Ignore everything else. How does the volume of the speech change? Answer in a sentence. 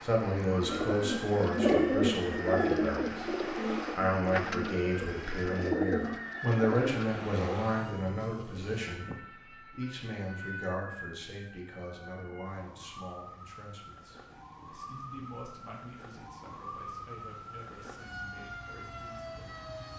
The volume of the speech goes down.